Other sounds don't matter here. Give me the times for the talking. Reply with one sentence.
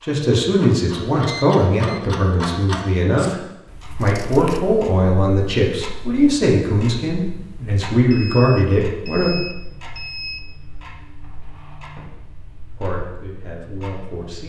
The talking can be heard from 0.0 to 9.3 s and from 12.8 to 14.4 s.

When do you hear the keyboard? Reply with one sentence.
The keyboard can't be heard in this clip.